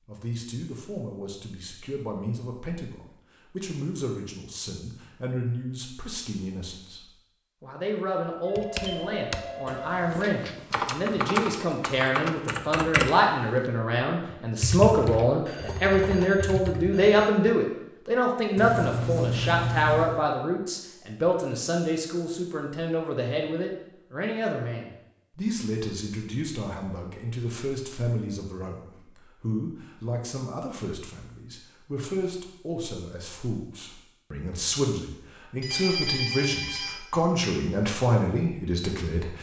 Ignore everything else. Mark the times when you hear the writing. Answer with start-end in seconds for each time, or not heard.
18.6-20.2.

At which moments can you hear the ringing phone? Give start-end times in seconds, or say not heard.
8.4-10.1, 15.4-17.3, 35.6-37.0.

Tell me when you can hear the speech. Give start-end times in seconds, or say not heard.
0.1-39.3.